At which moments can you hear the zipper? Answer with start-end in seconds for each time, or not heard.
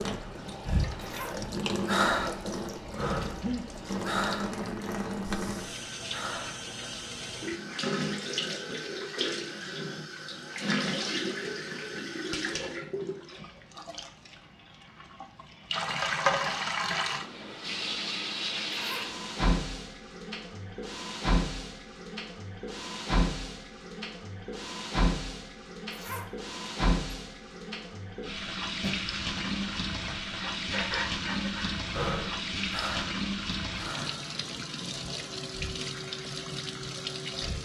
0.9-1.4, 18.7-19.1, 25.9-26.3.